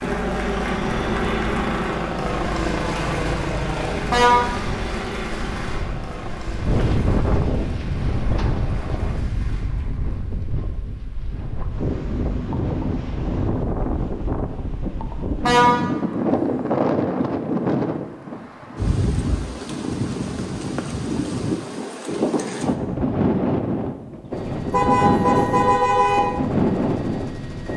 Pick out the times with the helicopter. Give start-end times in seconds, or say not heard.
0.0-9.2, 24.3-27.7.